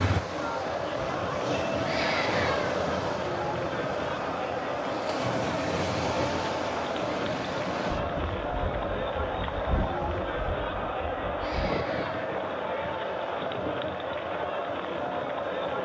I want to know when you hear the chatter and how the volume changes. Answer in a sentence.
You can hear the chatter from 0.1 to 15.8 s, at a steady volume.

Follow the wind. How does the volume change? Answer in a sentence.
The volume of the wind goes down.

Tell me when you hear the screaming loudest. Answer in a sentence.
The loudest moment of the screaming is at 2 seconds.